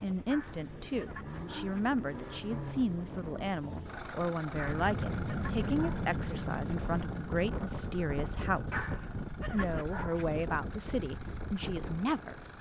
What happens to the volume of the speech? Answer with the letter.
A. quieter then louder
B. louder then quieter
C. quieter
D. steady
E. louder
D.